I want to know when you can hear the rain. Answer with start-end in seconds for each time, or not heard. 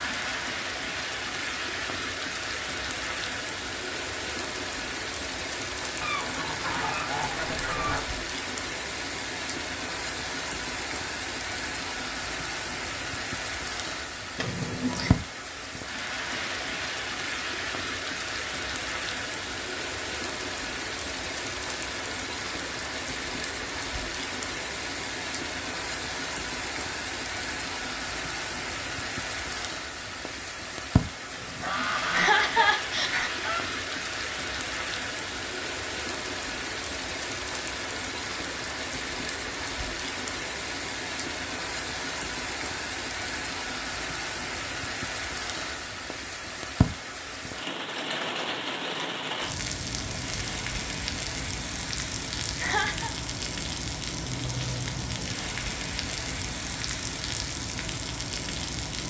0.0-59.0.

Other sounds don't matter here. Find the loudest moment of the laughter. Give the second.
32 s.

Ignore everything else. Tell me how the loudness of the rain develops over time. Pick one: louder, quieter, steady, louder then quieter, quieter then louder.
steady.